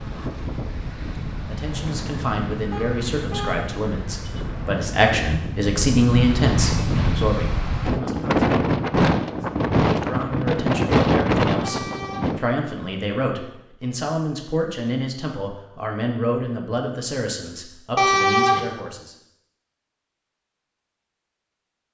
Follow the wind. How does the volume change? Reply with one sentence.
The volume of the wind goes up.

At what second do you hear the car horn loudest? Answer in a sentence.
The volume of the car horn peaks at 18 seconds.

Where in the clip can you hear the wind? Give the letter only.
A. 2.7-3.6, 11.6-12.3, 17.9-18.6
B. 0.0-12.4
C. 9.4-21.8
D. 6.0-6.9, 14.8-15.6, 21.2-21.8
B.